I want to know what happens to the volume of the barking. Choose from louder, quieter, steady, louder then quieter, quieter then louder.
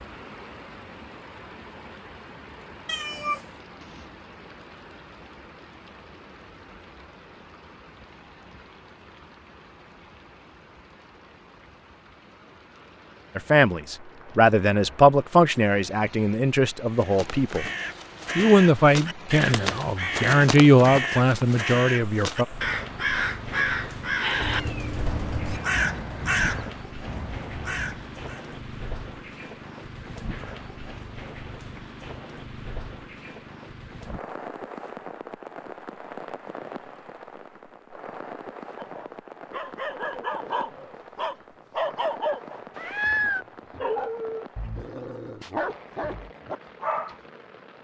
steady.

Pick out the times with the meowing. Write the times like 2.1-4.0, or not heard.
2.9-4.0, 24.4-25.6, 42.8-43.5.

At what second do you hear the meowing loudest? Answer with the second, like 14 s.
43 s.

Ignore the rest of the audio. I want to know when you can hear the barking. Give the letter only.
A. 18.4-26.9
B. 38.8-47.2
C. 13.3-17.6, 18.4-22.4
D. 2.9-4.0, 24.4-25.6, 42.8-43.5
B.